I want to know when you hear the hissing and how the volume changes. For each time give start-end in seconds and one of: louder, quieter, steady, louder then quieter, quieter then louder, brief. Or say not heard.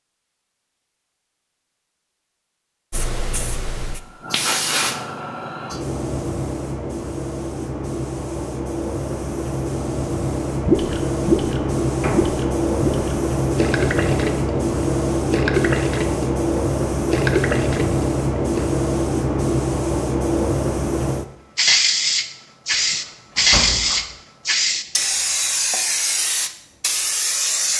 2.9-27.7 louder.